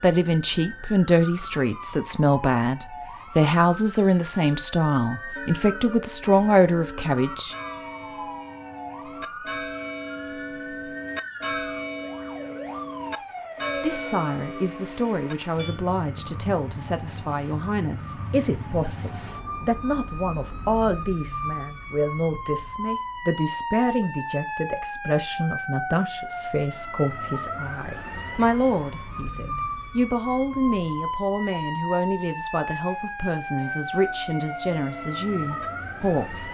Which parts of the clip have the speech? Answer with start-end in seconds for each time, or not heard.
0.0-7.5, 13.8-36.4.